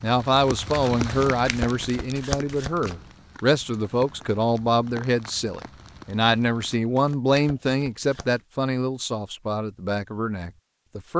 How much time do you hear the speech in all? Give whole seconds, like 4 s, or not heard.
11 s.